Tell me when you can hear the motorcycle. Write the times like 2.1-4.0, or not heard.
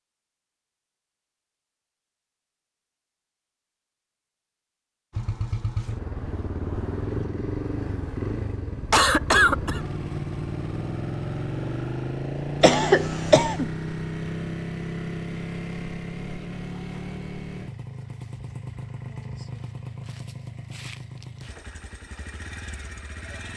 5.1-23.5.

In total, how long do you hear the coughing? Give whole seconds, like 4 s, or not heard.
2 s.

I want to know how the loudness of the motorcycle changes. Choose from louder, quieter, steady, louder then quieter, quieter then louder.
quieter.